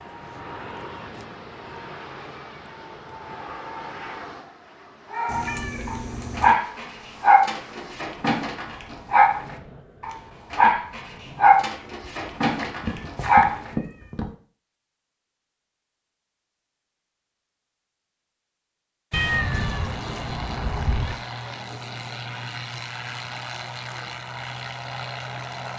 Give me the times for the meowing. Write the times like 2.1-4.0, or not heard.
5.2-6.5, 12.6-14.3, 19.1-21.1.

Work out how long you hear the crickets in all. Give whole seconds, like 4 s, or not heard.
not heard.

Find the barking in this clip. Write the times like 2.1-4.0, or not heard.
5.1-13.7.